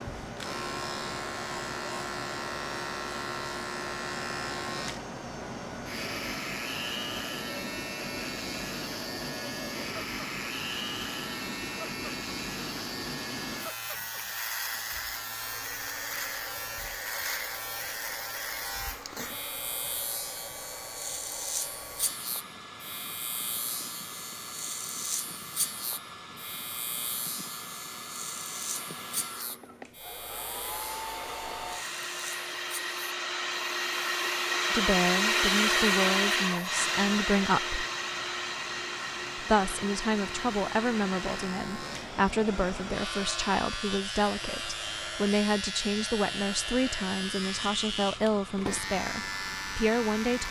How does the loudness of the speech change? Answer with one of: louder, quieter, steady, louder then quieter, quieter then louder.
steady.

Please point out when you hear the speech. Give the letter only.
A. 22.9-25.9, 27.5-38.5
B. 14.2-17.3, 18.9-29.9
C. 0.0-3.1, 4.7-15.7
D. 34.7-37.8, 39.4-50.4
D.